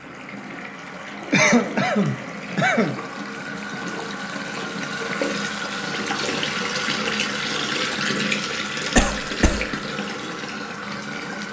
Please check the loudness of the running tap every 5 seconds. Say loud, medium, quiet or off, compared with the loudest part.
medium, loud, medium.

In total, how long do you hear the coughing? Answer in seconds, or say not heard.
2 s.